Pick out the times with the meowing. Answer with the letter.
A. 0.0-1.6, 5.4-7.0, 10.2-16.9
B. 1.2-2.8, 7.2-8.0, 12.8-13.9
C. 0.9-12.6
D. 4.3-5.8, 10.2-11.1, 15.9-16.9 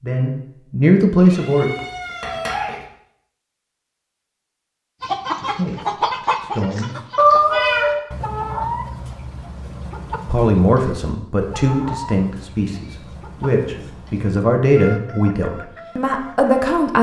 B.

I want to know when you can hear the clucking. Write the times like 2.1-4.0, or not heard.
5.0-16.7.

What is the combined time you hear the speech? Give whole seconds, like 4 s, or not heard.
10 s.